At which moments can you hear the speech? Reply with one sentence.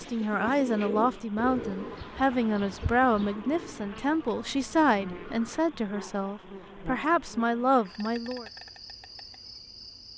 The speech can be heard from 0.0 to 8.4 s.